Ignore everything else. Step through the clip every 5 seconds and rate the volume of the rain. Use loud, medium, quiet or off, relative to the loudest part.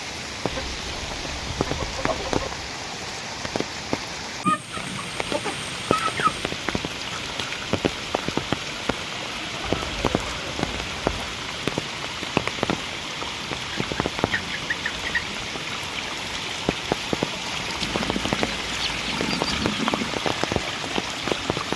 medium, loud, loud, loud, loud.